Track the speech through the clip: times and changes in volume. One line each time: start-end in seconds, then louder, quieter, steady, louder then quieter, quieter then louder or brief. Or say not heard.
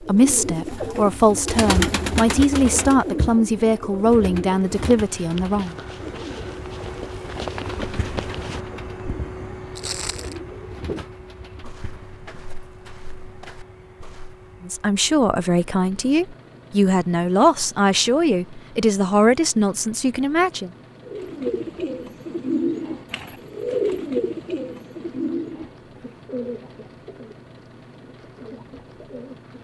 0.0-5.8 steady
14.6-20.7 steady.